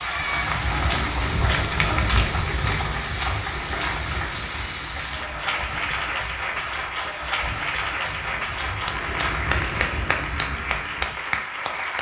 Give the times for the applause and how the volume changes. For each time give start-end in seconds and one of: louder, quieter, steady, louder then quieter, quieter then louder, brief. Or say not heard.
0.0-11.9 steady.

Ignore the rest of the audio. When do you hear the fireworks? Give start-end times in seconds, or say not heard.
not heard.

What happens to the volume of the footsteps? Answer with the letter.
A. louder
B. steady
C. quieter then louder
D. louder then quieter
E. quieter
C.